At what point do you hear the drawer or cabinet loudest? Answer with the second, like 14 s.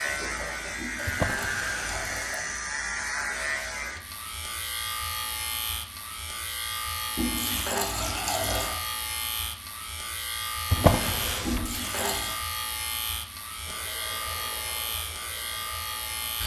11 s.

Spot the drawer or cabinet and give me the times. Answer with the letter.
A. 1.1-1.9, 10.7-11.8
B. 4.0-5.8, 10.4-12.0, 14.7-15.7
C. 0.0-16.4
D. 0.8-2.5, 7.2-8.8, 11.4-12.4
A.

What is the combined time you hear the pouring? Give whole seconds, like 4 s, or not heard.
4 s.